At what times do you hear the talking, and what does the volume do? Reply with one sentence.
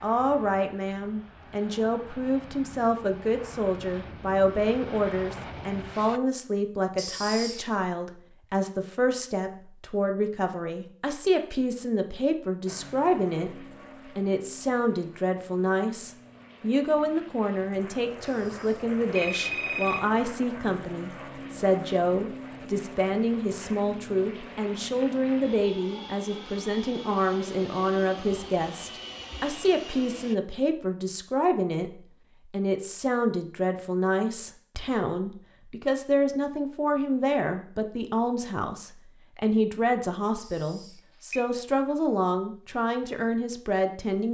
You can hear the talking from 0.0 to 44.2 s, at a steady volume.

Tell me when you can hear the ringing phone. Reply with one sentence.
You can hear the ringing phone from 7.0 to 7.7 s, from 18.2 to 20.0 s and from 40.4 to 41.5 s.